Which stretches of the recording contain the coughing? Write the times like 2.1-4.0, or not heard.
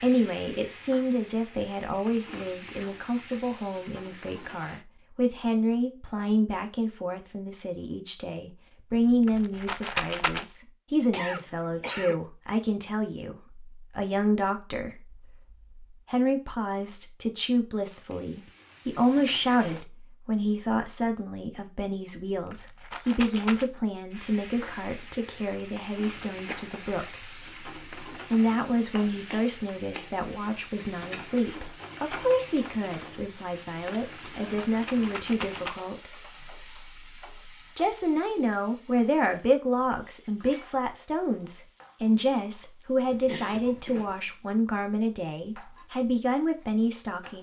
11.1-12.2, 26.2-26.9, 43.1-44.1.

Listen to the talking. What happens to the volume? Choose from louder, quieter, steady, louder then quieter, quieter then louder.
steady.